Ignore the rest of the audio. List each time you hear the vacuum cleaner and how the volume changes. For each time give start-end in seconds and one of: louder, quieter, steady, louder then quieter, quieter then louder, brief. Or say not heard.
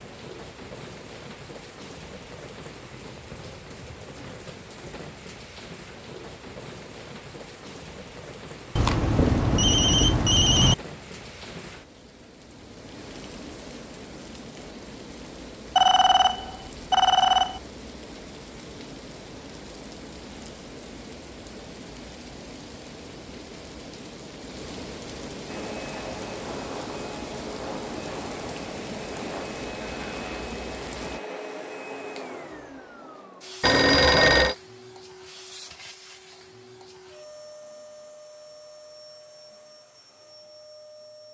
25.4-41.3 quieter.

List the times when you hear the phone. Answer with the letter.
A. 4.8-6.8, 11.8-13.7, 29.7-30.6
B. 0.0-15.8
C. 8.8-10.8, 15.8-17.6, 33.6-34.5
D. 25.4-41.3
C.